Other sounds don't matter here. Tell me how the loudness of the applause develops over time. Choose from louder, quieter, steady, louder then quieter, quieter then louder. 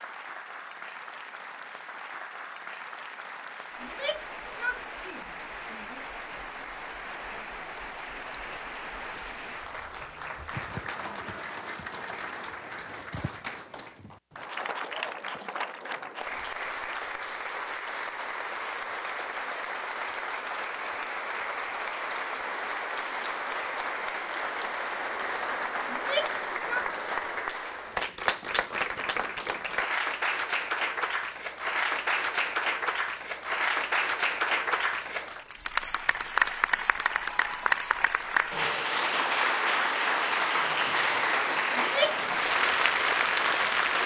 louder.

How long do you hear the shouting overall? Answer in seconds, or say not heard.
4 s.